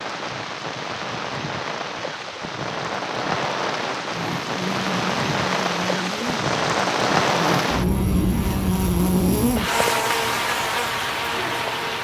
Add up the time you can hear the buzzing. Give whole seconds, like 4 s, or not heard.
8 s.